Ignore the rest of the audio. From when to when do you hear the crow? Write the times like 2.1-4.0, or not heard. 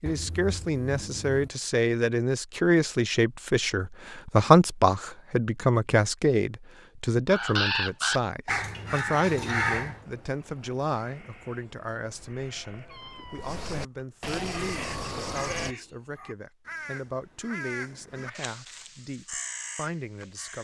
7.3-10.0, 14.5-20.5.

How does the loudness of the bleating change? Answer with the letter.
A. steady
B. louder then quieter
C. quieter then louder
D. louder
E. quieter
D.